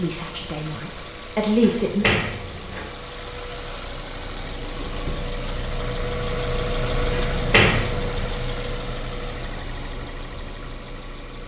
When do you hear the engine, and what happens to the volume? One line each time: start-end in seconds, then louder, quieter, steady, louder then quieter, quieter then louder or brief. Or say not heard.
0.0-11.4 louder then quieter.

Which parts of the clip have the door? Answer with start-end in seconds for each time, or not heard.
1.6-2.9, 7.1-8.2.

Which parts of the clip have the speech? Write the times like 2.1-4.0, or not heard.
0.0-2.0.